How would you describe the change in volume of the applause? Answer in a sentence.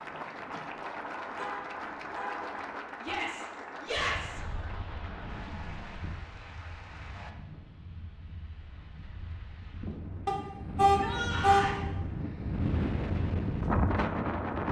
The loudness of the applause goes down.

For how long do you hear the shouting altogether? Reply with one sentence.
You can hear the shouting for 2 seconds altogether.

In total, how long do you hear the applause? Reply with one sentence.
The applause can be heard for 7 seconds in total.